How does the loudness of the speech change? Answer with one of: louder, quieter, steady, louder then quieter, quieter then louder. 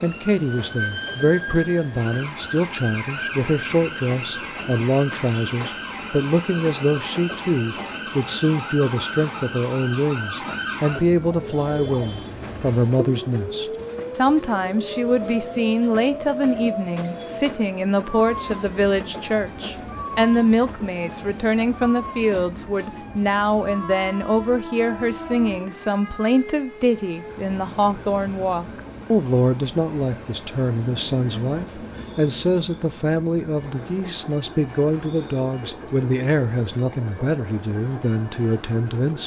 steady.